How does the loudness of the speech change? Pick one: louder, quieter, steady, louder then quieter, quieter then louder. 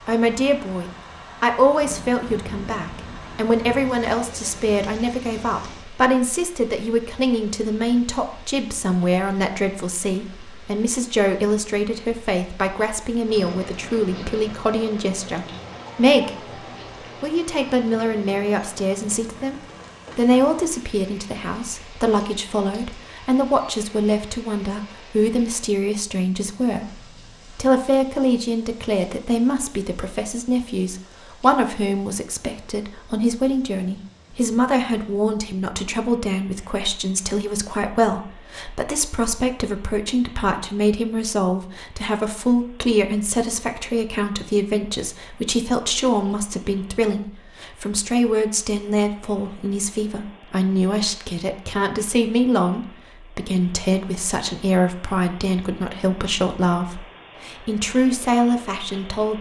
steady.